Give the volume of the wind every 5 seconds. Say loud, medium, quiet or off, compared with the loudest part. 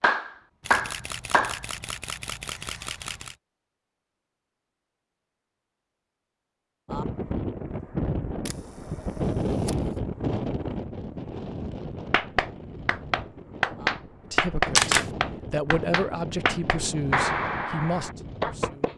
off, loud, medium, medium.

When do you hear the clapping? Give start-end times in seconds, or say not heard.
0.0-1.6, 12.1-18.9.